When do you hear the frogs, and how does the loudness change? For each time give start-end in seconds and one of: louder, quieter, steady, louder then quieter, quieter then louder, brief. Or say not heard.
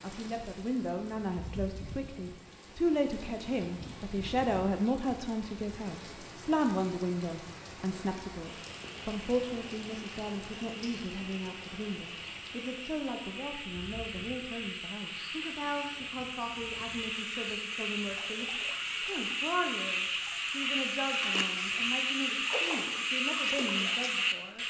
8.4-24.6 louder.